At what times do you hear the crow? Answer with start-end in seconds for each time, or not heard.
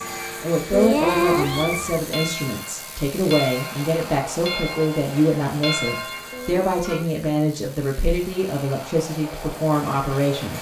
not heard.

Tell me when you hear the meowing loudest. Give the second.
1 s.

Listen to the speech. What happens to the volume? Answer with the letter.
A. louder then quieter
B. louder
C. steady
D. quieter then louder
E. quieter
C.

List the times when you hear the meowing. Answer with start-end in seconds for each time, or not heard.
0.7-2.0, 6.3-7.2.